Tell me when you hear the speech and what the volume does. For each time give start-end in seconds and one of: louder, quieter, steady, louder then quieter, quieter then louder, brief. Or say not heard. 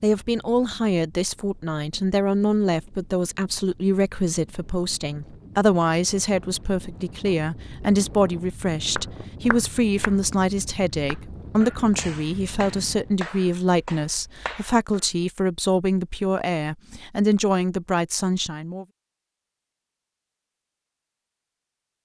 0.0-18.9 steady.